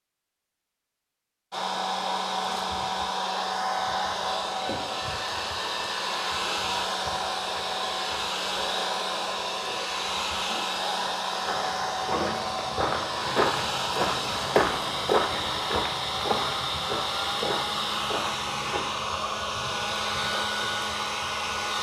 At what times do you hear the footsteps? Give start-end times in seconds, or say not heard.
11.4-19.0.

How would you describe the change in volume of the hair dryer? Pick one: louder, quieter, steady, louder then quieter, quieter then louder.
steady.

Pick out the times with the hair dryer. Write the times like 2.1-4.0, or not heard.
1.5-21.7.